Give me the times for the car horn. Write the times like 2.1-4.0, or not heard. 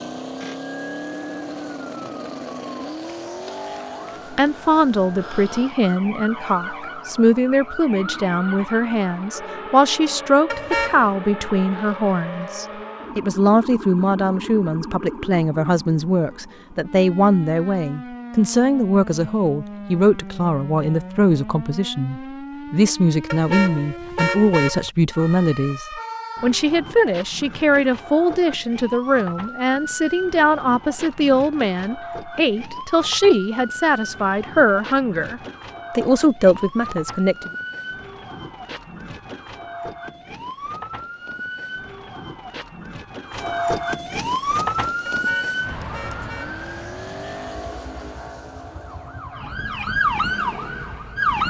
10.5-11.1, 23.3-24.9, 45.0-46.6.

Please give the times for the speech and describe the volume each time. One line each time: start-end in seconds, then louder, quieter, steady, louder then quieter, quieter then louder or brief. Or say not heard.
4.3-37.5 steady.